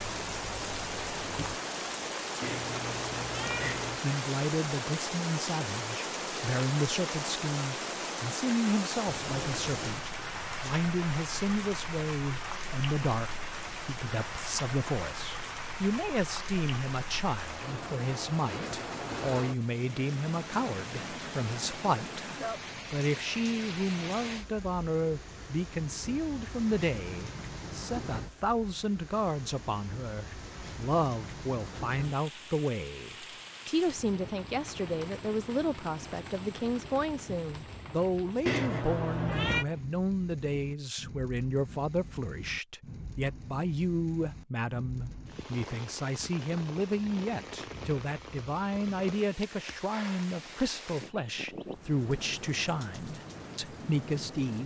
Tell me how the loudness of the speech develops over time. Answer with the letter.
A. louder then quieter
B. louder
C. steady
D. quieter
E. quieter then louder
C.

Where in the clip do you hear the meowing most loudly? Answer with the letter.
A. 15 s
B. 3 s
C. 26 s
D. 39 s
D.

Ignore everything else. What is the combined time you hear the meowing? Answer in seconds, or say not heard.
3 s.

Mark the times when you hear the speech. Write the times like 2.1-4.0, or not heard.
3.6-22.2, 22.9-54.6.